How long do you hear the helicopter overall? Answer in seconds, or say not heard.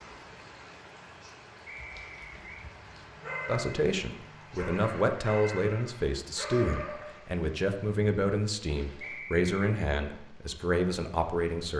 not heard.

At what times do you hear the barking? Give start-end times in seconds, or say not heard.
1.9-7.2.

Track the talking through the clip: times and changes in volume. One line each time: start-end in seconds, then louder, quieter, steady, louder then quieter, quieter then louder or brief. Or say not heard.
3.5-11.7 steady.